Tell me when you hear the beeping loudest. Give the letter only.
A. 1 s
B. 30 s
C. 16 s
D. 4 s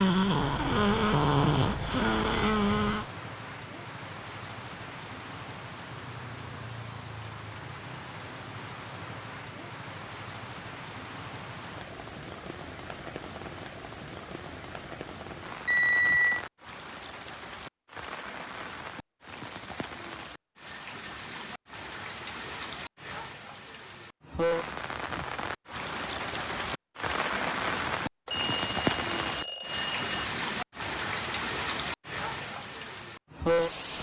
C.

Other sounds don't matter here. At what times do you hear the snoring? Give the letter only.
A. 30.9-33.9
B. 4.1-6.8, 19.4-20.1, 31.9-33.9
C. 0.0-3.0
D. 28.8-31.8
C.